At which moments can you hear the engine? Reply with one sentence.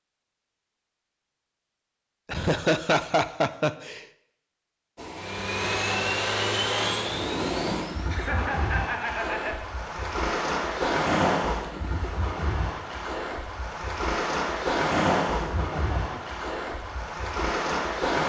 The engine can be heard from 5.2 to 8.2 s.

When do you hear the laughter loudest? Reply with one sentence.
The loudest moment of the laughter is at 3 seconds.